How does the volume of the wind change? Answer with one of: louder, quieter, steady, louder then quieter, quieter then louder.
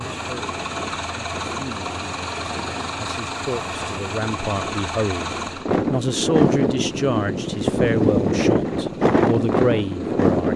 louder.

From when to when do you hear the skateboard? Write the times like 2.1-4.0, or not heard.
not heard.